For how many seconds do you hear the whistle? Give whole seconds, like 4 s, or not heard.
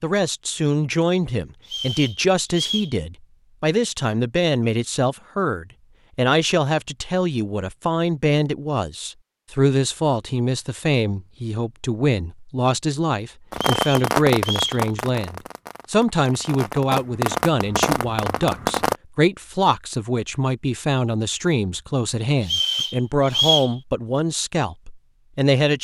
4 s.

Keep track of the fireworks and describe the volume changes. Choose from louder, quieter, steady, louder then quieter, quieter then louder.
quieter then louder.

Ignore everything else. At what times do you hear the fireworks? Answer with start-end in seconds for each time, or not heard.
13.5-18.9.